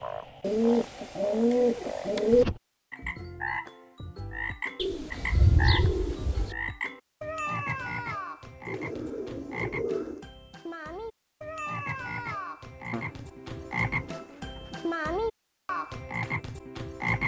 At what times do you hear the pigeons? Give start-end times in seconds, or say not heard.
0.4-2.5, 4.8-6.5, 8.7-10.2, 12.9-14.9.